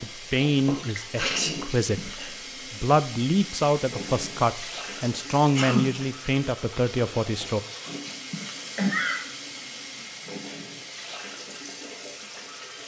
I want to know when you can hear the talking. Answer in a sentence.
The talking can be heard from 0.0 to 7.6 s.